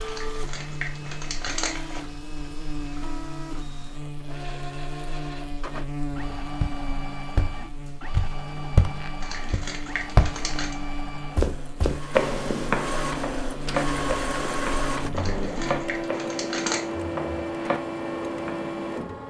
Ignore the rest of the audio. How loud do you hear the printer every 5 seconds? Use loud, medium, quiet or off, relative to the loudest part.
medium, medium, loud, loud.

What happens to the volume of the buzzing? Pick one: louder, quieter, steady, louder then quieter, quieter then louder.
steady.